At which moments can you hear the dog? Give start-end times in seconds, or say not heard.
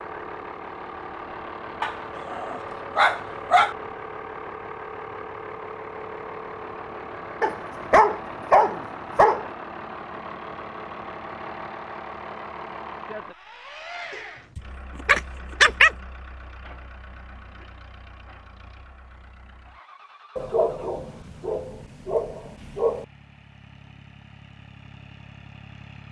1.8-3.8, 7.4-9.4, 14.6-15.9, 20.4-23.1.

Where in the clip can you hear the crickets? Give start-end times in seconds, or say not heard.
not heard.